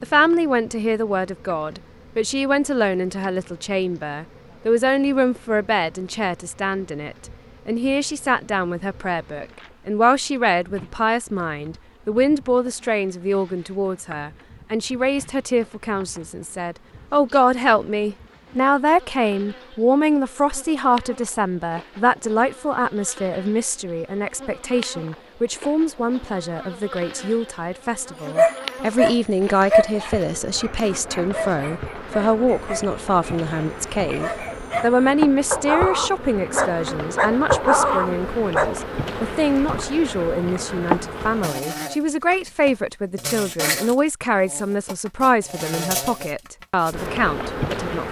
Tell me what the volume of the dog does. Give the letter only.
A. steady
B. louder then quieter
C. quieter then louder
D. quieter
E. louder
C.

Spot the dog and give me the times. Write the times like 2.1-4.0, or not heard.
28.4-38.8.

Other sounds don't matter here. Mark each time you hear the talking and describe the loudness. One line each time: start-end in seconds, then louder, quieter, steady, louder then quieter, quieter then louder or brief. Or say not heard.
0.0-48.0 steady.